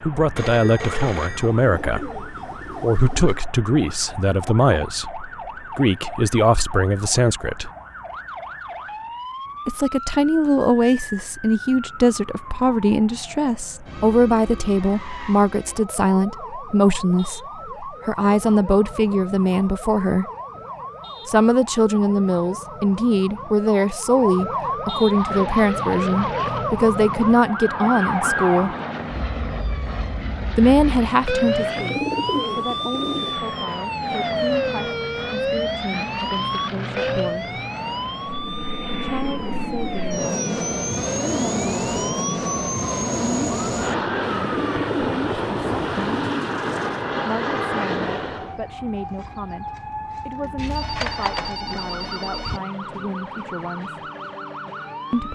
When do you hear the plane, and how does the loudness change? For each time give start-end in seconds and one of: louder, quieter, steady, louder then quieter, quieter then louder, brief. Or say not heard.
24.9-48.6 louder.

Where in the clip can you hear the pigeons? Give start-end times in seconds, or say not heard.
1.4-3.4, 31.6-33.4, 44.4-47.0.